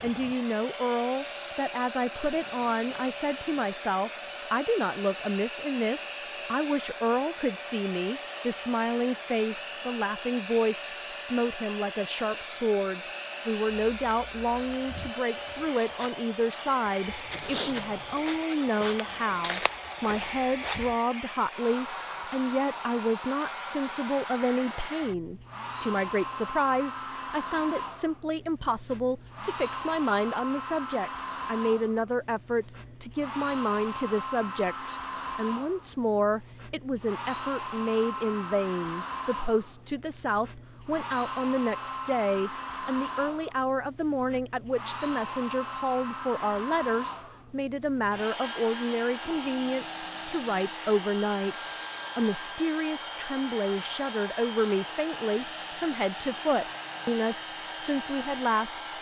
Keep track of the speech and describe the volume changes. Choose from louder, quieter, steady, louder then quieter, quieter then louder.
steady.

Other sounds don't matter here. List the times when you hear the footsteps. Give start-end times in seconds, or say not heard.
13.8-20.9.